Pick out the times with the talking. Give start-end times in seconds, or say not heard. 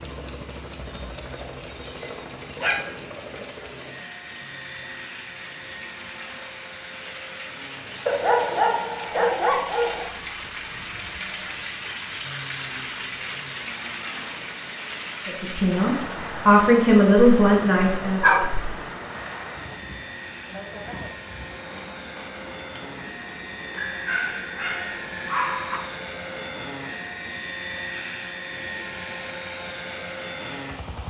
15.2-18.2.